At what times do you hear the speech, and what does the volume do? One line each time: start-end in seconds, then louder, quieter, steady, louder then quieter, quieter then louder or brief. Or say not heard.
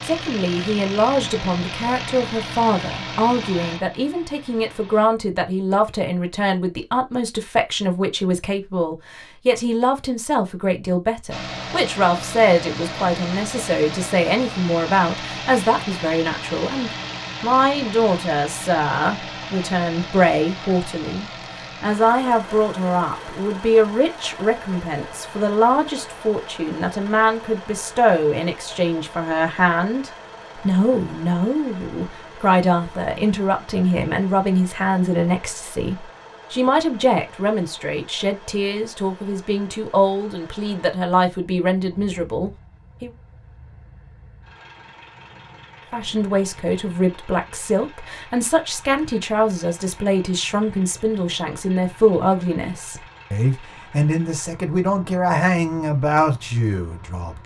0.1-43.1 steady
45.9-57.4 steady.